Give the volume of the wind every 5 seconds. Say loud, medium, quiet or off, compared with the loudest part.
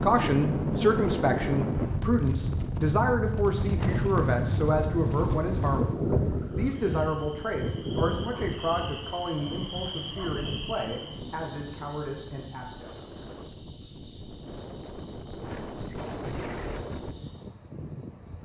loud, loud, quiet, medium.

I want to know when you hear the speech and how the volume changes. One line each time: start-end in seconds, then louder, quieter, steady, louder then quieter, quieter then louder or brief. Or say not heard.
0.0-12.9 quieter.